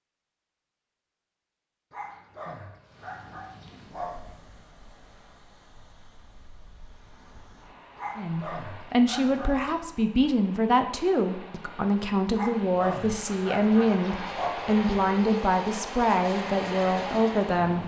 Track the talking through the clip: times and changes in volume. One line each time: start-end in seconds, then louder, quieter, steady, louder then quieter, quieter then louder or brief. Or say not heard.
8.2-17.8 steady.